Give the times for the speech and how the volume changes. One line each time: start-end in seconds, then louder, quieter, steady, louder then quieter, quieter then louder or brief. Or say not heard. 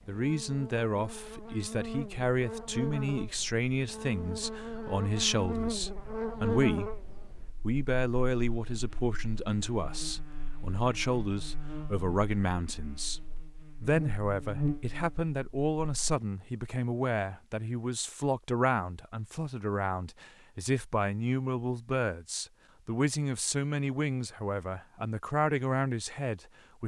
0.1-13.2 steady
13.8-26.8 steady.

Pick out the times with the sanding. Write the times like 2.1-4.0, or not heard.
not heard.